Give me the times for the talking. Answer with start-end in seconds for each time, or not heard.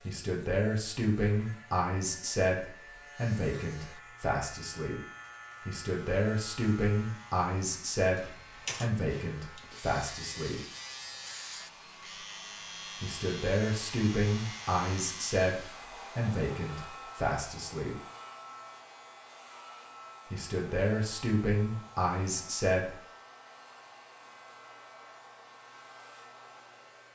0.1-5.0, 5.7-10.6, 13.0-17.9, 20.3-22.9.